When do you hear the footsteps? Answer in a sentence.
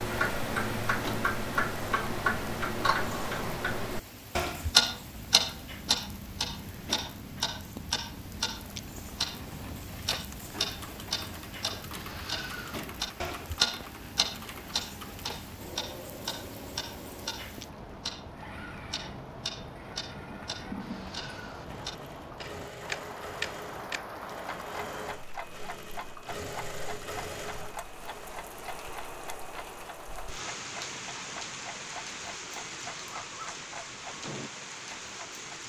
The footsteps can't be heard in this clip.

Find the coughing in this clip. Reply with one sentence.
You can't hear the coughing here.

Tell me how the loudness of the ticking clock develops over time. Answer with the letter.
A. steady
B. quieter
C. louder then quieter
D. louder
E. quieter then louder
B.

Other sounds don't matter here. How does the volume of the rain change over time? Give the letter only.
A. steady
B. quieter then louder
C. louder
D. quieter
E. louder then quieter
C.